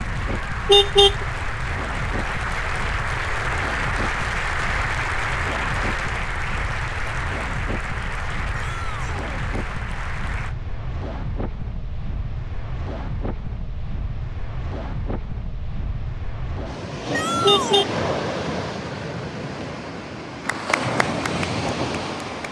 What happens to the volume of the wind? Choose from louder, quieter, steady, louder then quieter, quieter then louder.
louder.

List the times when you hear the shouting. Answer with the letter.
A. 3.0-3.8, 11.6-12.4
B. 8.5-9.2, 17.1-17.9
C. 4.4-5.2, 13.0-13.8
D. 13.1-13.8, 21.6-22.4
B.